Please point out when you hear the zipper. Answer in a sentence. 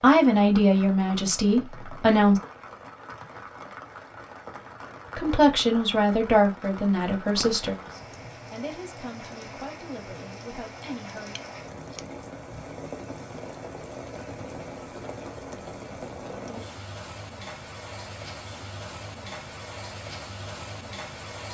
You can't hear the zipper here.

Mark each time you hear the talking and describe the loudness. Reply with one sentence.
The talking can be heard briefly from 0.0 to 2.4 s; and from 5.2 to 11.3 s, getting quieter.